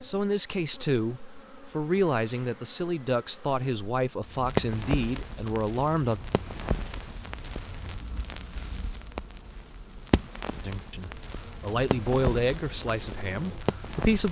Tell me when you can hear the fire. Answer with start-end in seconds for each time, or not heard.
4.2-14.2.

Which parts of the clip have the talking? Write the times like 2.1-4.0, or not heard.
0.0-6.2, 10.6-14.2.